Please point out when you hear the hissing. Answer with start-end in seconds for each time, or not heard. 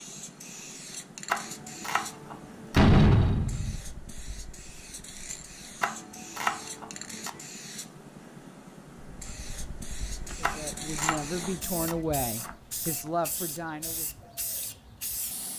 0.0-15.5.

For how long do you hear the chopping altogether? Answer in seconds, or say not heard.
5 s.